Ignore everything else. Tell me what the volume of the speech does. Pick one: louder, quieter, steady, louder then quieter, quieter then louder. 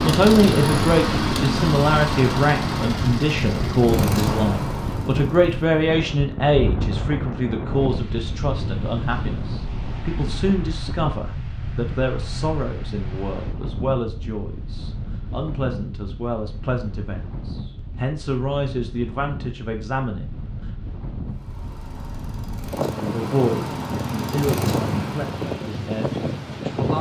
quieter.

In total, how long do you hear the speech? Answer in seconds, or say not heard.
24 s.